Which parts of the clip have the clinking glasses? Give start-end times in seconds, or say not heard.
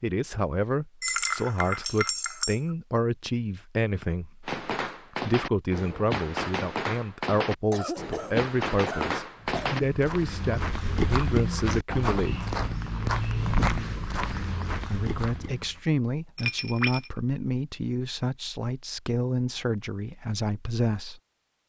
1.0-2.8, 16.4-17.1.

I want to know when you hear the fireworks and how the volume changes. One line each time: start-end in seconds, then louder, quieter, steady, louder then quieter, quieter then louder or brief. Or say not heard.
4.5-9.8 steady.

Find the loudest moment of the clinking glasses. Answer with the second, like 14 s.
1 s.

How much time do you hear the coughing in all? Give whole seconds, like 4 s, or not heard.
2 s.